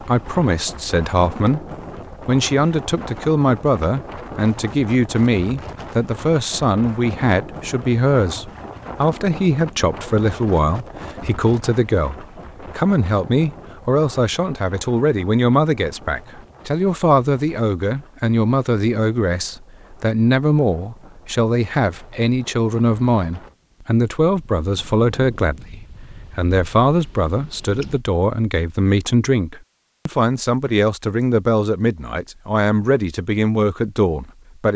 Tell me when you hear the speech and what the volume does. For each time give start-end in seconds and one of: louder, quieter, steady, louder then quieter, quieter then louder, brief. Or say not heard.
0.0-34.7 steady.